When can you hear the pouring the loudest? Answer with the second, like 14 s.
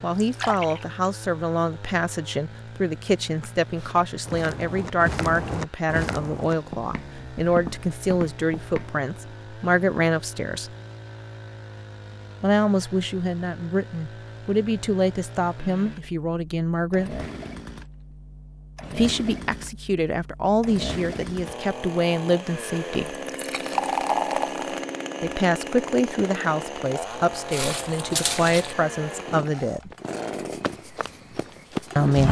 24 s.